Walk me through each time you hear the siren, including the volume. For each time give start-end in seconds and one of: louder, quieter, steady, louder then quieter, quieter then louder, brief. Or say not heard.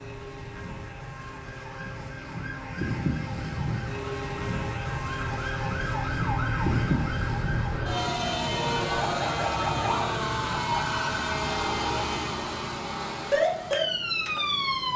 0.0-14.9 louder.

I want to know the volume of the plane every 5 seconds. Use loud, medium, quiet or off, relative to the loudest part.
loud, loud, medium.